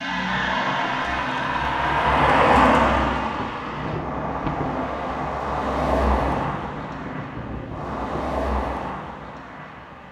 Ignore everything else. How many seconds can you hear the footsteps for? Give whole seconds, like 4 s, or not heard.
not heard.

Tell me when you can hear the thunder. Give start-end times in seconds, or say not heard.
3.4-8.3.